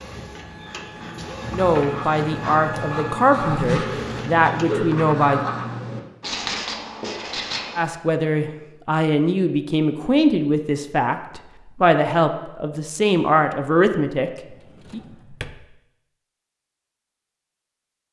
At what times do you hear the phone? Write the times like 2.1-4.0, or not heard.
not heard.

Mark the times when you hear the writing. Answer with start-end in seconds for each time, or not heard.
1.4-7.8.